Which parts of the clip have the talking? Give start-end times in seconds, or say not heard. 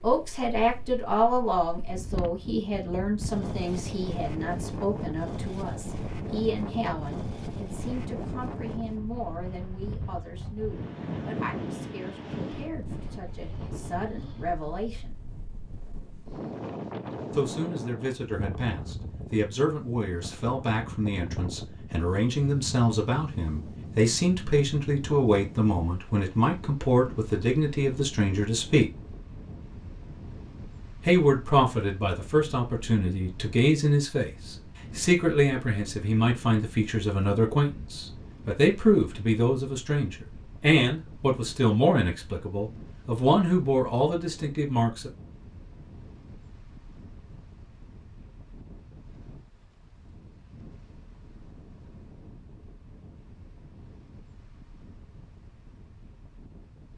0.0-15.2, 17.3-28.9, 31.1-45.1.